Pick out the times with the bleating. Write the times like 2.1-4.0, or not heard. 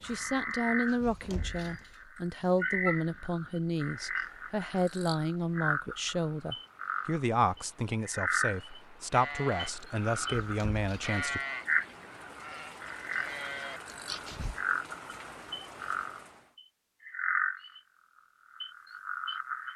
9.1-14.2.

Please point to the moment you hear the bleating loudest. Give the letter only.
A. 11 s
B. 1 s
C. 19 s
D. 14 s
A.